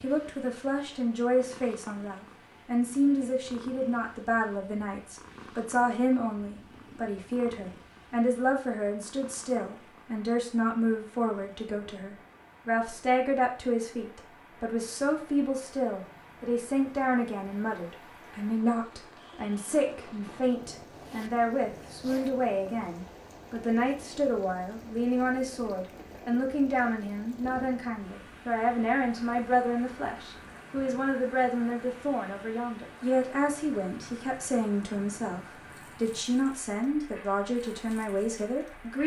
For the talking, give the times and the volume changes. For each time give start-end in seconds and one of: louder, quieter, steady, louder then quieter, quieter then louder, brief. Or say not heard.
0.0-39.0 steady.